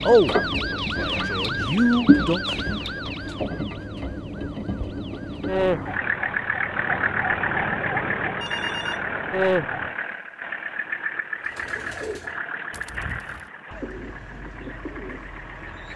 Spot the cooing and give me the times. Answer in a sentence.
The cooing can be heard from 11.4 to 15.9 s.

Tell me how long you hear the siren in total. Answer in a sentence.
You can hear the siren for 10 seconds altogether.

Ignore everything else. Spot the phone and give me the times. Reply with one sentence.
You can hear the phone from 8.4 to 9.1 s.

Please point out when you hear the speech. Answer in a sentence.
The speech can be heard from 0.0 to 2.4 s.